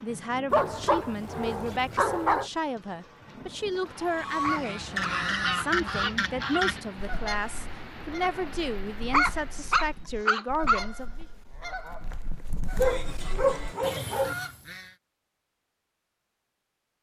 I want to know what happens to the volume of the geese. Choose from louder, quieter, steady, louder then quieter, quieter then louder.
quieter then louder.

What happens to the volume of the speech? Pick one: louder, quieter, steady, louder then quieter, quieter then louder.
steady.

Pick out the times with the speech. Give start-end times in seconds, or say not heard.
0.0-11.2.